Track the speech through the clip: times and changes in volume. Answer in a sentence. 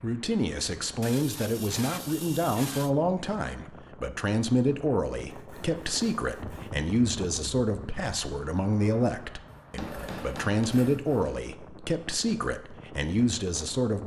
The speech can be heard from 0.0 to 14.0 s, at a steady volume.